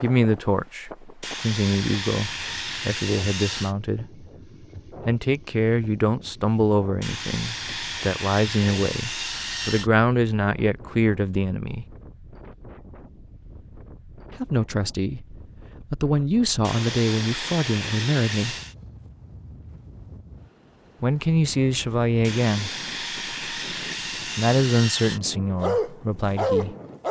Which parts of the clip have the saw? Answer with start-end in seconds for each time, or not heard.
1.2-3.8, 7.0-9.9, 16.6-18.8, 22.2-25.2.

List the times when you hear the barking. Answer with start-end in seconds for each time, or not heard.
25.6-27.0.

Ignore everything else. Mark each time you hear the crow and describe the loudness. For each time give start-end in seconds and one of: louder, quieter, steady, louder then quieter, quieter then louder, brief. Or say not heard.
not heard.